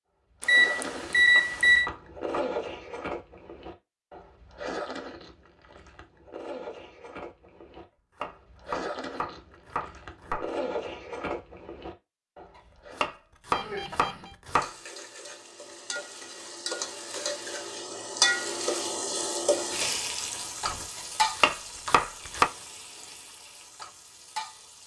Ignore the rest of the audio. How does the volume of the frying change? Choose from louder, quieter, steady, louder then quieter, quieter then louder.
louder then quieter.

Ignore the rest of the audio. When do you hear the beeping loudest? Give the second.
1 s.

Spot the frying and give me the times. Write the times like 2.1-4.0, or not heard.
14.5-24.8.